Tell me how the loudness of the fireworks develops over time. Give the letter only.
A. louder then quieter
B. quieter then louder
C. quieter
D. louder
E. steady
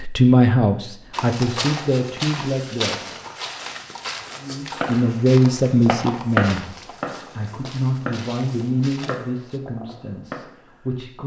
A.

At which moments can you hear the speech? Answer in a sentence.
The speech can be heard from 0.0 to 3.0 s, from 4.4 to 6.8 s and from 7.3 to 11.2 s.